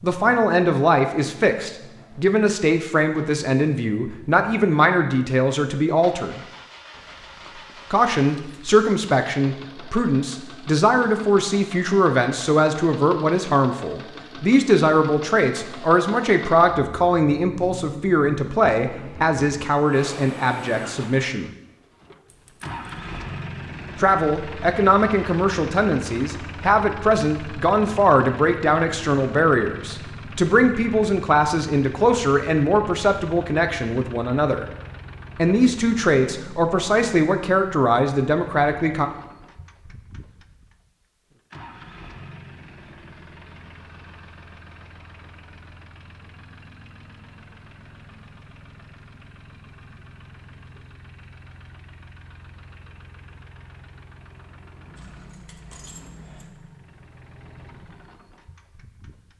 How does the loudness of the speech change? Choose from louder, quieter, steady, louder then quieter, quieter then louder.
steady.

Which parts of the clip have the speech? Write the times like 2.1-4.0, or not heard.
0.0-6.4, 7.9-21.5, 24.0-34.6, 35.4-39.0.